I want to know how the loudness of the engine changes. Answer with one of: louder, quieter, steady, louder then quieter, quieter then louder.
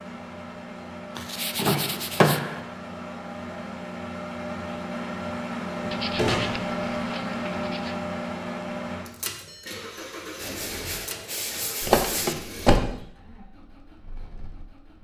louder then quieter.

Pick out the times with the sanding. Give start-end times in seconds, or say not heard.
1.1-2.4, 5.9-8.0, 10.3-12.3.